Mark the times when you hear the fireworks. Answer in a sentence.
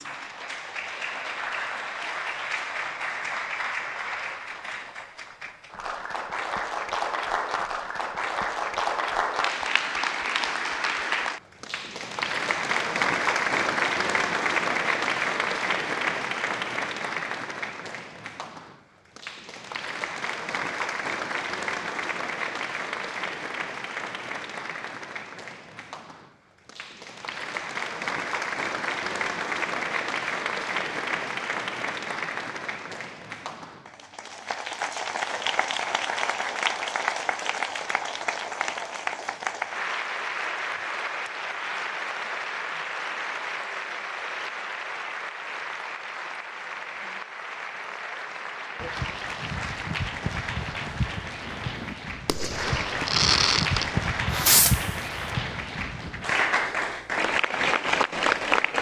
The fireworks can be heard from 51.4 to 54.9 s.